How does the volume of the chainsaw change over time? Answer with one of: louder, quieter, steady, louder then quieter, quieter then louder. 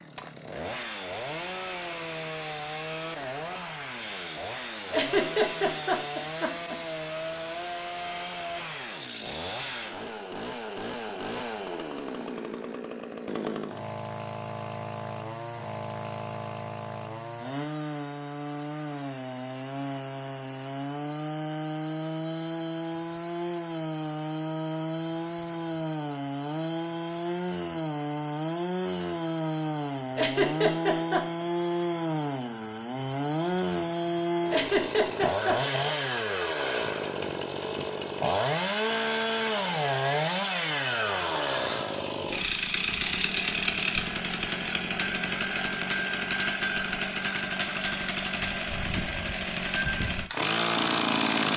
louder.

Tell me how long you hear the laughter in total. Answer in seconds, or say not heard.
4 s.